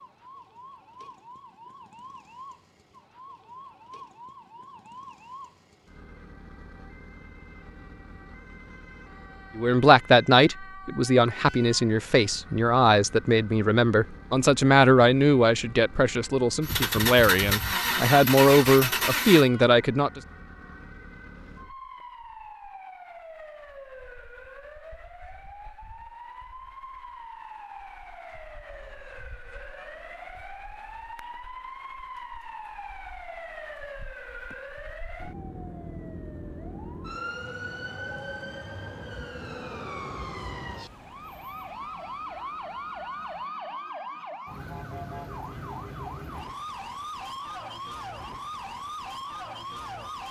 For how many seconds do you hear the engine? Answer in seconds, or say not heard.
3 s.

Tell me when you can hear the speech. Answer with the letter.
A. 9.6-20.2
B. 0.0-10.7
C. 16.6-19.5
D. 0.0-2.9
A.